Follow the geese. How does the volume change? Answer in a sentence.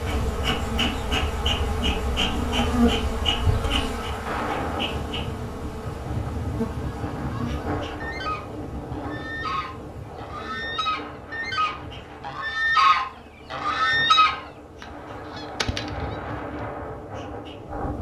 The loudness of the geese goes up, then down.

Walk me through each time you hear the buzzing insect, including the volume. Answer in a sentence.
The buzzing insect can be heard from 0.0 to 17.9 s, getting quieter.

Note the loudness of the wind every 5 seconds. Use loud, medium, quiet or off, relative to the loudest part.
loud, loud, medium, loud.